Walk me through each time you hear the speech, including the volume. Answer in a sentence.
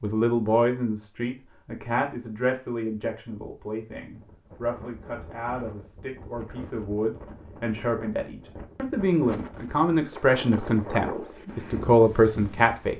The speech can be heard from 0.0 to 12.9 s, getting quieter then louder.